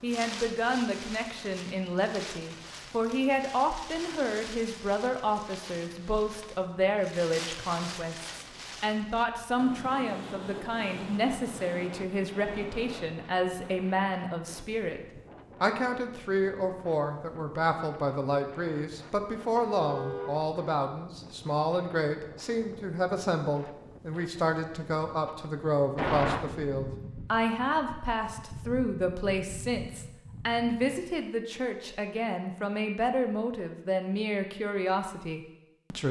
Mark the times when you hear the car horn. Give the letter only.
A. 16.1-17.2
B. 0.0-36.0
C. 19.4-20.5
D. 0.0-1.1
C.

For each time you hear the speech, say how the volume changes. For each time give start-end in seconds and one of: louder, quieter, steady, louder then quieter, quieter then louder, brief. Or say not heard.
0.0-36.0 steady.